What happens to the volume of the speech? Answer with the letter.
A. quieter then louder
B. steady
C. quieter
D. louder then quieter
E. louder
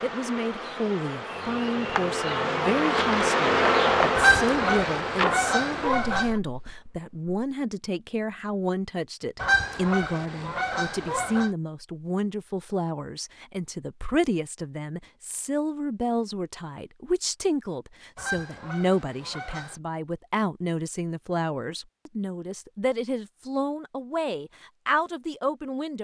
B.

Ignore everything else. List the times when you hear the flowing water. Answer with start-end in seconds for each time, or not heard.
not heard.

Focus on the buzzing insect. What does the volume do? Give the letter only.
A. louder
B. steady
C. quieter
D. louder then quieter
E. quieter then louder
D.